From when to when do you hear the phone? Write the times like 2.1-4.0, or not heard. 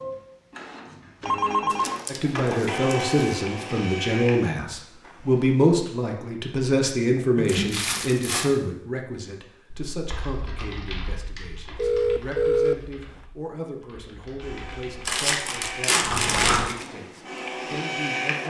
1.2-2.0, 11.8-12.8.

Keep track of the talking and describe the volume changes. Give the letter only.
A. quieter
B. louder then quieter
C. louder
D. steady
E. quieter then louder
A.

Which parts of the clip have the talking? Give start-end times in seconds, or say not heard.
2.0-18.4.